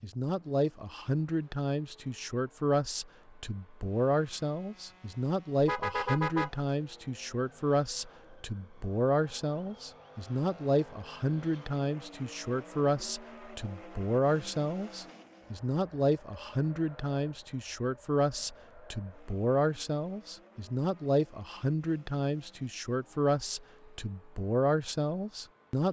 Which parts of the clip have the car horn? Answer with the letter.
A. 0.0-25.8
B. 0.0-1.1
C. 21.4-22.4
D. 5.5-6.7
D.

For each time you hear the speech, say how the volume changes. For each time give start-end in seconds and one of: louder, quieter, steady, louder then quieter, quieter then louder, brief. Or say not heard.
0.0-25.8 steady.